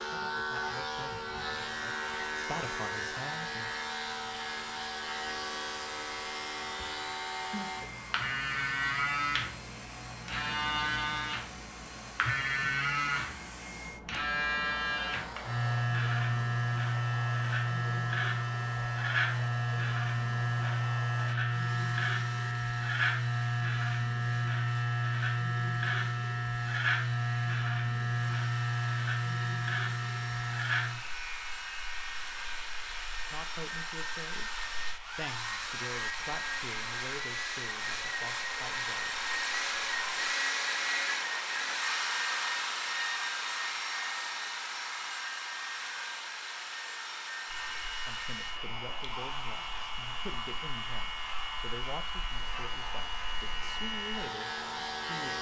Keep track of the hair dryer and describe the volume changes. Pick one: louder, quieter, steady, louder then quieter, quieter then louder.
louder then quieter.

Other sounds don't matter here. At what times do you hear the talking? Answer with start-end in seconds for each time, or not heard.
0.0-3.7, 33.3-34.5, 35.1-39.3, 48.0-55.3.